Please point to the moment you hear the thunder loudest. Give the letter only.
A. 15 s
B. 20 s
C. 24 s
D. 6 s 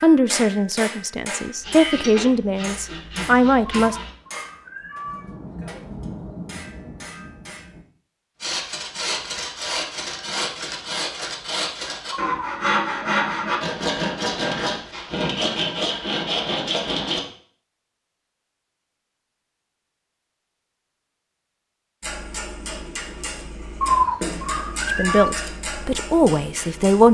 D.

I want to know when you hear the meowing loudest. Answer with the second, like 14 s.
24 s.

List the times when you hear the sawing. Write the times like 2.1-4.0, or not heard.
1.6-4.2, 8.4-17.2.